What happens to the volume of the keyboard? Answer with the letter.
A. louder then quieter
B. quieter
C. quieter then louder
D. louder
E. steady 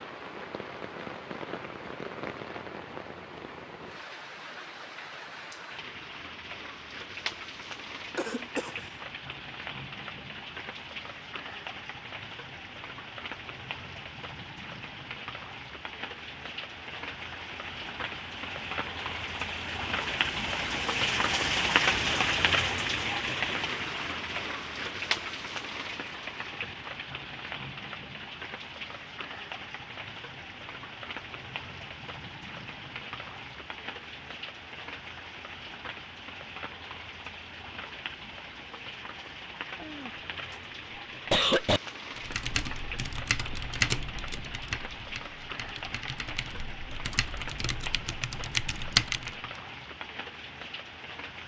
C.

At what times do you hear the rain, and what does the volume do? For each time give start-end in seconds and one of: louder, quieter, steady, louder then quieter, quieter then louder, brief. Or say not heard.
0.0-51.4 louder then quieter.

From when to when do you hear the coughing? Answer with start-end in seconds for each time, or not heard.
8.2-8.8, 39.8-40.5, 41.3-41.8.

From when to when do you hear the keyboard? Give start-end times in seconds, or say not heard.
42.1-49.4.